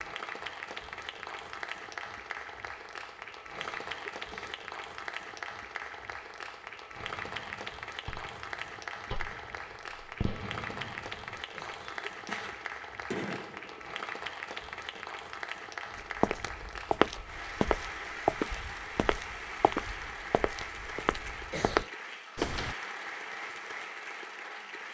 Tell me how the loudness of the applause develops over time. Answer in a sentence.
The volume of the applause stays about the same.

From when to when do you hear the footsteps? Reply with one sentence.
You can hear the footsteps from 15.9 to 22.8 s.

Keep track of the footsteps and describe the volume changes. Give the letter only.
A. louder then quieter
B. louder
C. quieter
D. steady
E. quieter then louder
E.